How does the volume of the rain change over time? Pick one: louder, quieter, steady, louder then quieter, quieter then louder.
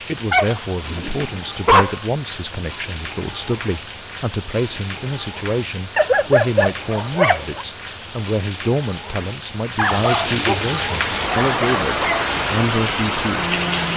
louder.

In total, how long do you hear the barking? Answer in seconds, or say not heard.
5 s.